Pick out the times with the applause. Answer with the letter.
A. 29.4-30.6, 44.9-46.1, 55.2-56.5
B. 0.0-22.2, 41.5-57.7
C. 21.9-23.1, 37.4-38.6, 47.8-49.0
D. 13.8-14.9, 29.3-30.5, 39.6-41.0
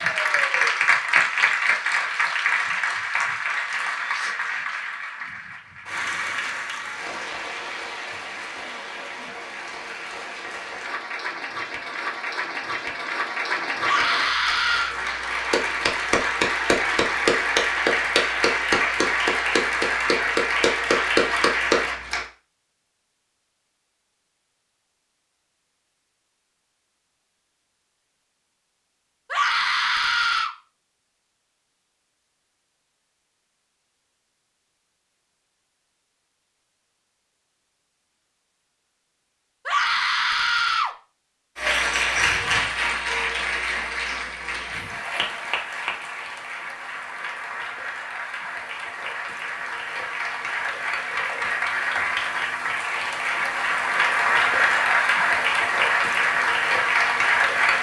B.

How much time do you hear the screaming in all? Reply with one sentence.
You can hear the screaming for 4 seconds altogether.